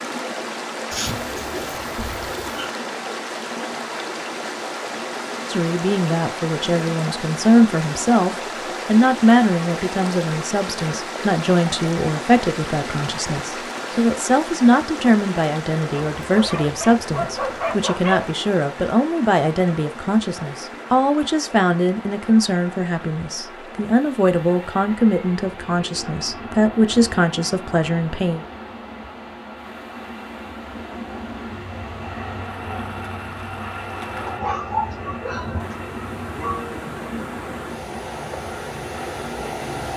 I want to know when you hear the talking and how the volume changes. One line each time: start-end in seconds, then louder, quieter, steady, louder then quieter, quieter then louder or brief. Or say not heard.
5.5-28.4 steady.